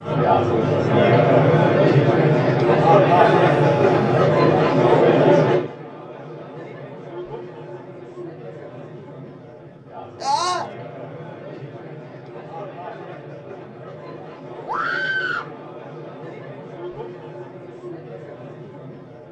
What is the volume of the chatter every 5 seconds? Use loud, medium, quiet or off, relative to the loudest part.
loud, medium, quiet, quiet.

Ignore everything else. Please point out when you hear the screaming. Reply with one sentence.
The screaming can be heard from 3.3 to 4.3 s, from 10.2 to 10.7 s and from 14.7 to 15.5 s.